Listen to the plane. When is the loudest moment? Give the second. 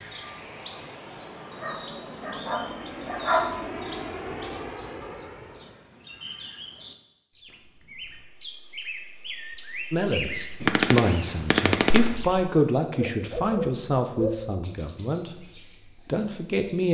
4 s.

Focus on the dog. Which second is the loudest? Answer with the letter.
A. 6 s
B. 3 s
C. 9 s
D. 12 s
B.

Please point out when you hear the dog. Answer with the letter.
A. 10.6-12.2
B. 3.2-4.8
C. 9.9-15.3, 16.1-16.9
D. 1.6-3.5
D.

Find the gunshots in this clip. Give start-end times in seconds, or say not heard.
10.6-12.2.